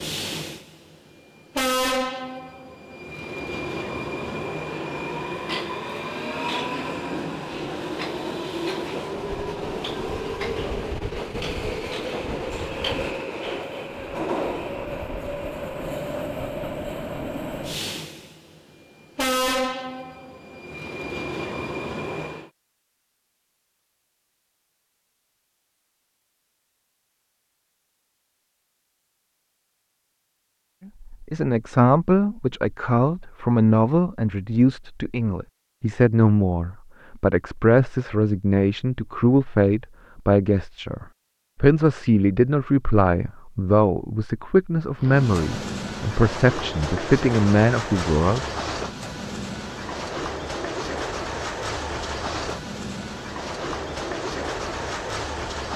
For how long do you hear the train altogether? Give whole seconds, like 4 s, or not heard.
33 s.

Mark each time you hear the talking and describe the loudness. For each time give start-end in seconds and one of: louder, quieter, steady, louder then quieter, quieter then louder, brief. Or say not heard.
31.0-48.5 steady.